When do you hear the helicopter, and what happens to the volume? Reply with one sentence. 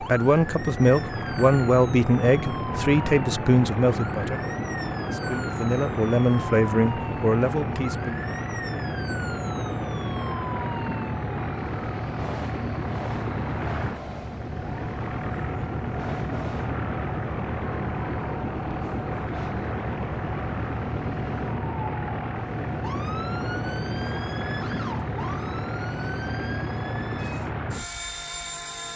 You can hear the helicopter from 0.0 to 28.9 s, at a steady volume.